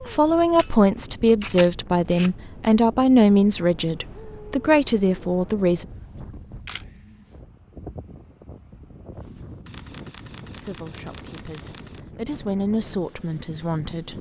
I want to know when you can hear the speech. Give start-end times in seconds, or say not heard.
0.1-5.8, 10.5-14.1.